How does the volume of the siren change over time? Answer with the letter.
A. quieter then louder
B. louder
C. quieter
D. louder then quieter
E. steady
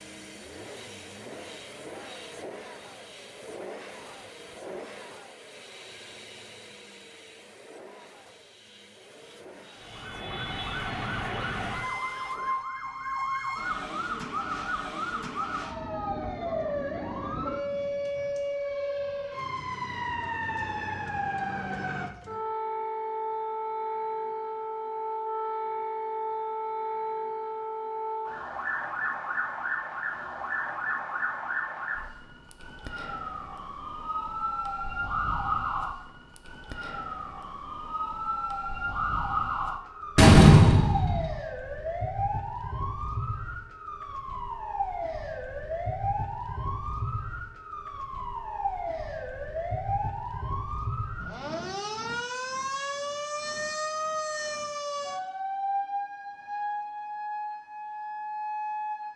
E.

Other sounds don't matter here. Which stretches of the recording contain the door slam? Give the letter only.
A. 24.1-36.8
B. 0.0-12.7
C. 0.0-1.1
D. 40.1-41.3
D.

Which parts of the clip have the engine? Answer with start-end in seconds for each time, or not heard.
0.0-12.7.